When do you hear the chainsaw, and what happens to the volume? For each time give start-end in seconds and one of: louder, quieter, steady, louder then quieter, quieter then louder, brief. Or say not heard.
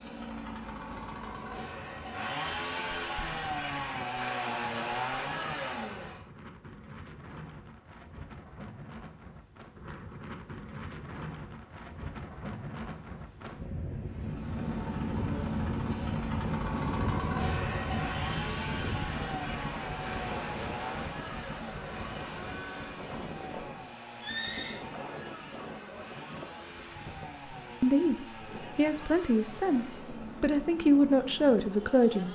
0.0-6.2 louder
14.1-32.2 quieter.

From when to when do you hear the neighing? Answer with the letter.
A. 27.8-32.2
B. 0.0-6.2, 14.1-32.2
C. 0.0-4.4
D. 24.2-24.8
D.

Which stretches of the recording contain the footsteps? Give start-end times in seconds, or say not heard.
not heard.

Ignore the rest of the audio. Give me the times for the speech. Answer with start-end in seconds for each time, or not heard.
27.8-32.2.